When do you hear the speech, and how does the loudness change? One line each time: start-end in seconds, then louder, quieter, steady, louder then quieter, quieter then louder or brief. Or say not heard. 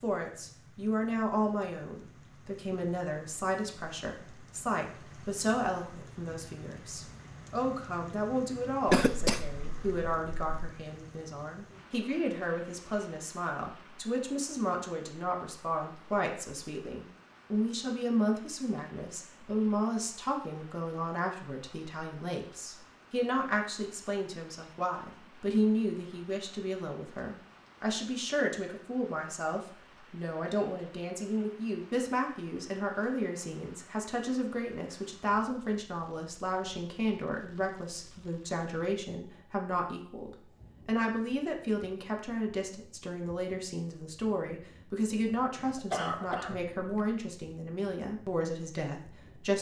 0.0-49.5 steady.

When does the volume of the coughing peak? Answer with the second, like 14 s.
9 s.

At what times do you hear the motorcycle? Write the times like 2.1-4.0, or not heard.
not heard.